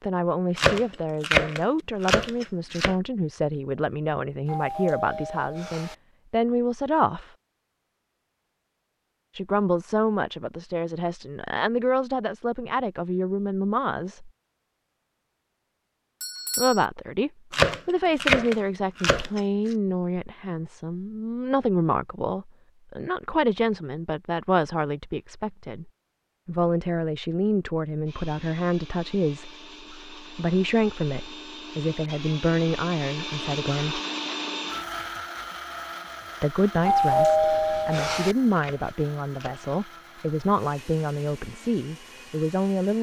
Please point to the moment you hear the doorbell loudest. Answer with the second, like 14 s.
37 s.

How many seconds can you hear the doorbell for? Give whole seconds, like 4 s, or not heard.
4 s.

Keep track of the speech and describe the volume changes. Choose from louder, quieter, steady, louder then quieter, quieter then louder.
steady.